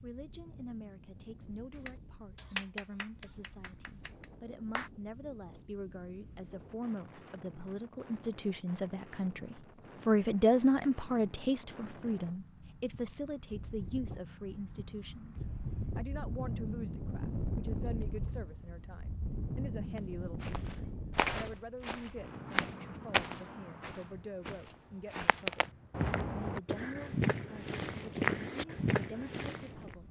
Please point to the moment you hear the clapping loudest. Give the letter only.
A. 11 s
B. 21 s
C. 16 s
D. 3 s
D.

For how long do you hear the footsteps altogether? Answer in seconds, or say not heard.
10 s.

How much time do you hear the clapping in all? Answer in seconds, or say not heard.
3 s.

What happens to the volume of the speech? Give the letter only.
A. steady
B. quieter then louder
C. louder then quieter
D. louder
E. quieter
C.